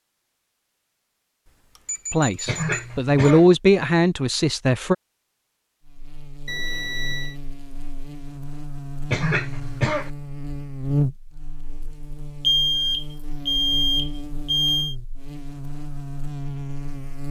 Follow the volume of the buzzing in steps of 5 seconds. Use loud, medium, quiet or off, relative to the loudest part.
off, medium, loud, loud.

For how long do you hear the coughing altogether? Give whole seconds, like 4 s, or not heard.
2 s.